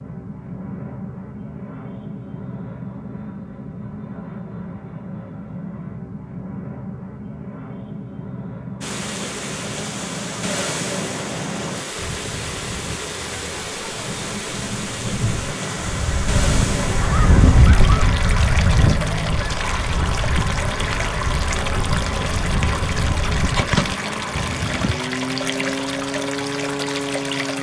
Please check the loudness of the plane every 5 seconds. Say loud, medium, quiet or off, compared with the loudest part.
medium, medium, medium, loud, loud, loud.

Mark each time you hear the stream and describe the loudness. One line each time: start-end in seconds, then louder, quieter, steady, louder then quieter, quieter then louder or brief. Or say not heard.
8.8-27.5 steady.